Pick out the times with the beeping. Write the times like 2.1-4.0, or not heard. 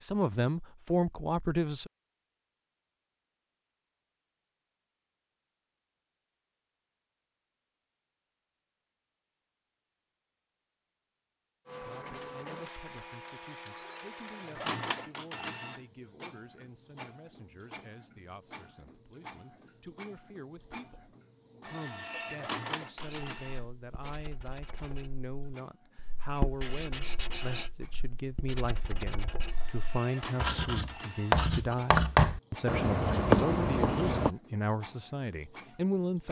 not heard.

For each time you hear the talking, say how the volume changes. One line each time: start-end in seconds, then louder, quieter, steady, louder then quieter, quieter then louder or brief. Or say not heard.
0.0-1.9 brief
11.8-36.2 louder.